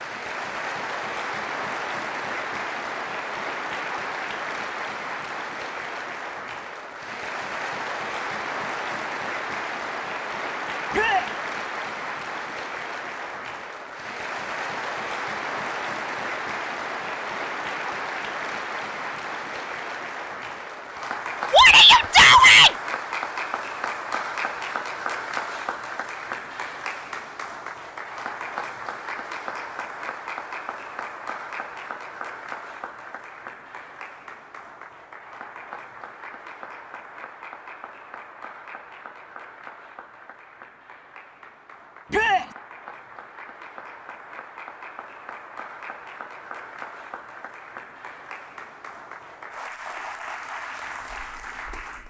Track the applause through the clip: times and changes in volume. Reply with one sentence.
The applause can be heard from 0.0 to 52.0 s, getting quieter.